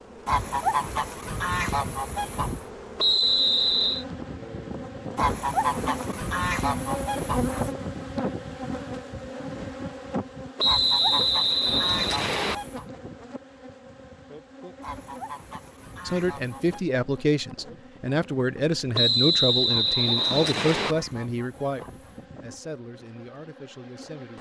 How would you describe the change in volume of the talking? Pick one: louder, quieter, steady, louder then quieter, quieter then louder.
quieter.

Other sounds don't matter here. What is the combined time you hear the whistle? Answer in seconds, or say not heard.
5 s.